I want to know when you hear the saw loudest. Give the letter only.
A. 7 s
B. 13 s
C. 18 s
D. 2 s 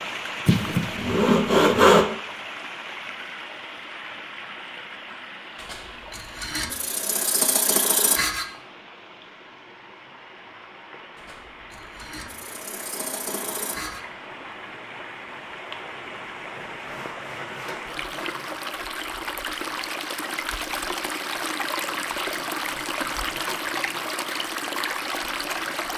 D.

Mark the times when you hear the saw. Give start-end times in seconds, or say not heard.
0.5-2.0, 5.6-8.4, 11.2-14.0, 16.6-18.6, 22.4-24.1.